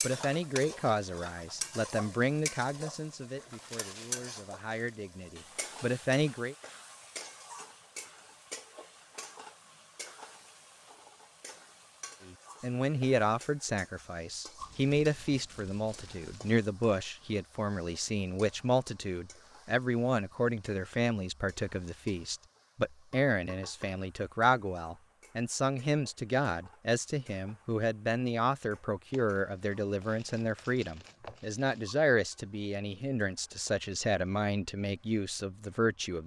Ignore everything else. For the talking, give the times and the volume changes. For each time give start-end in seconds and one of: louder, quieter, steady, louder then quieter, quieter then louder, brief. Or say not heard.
0.0-6.5 quieter then louder
12.2-36.2 steady.